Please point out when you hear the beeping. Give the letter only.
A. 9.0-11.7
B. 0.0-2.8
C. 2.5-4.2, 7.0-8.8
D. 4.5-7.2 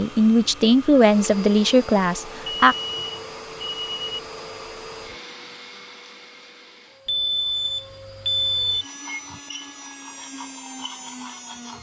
C.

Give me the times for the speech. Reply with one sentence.
The speech can be heard from 0.0 to 2.8 s.